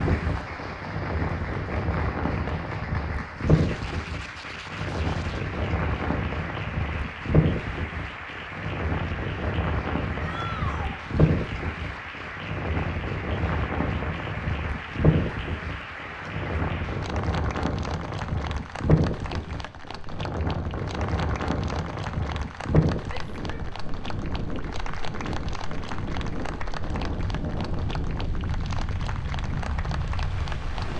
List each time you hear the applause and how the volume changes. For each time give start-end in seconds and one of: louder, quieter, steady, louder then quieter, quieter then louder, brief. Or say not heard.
0.0-30.9 steady.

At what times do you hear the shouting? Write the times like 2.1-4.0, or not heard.
10.2-10.9, 23.1-23.6.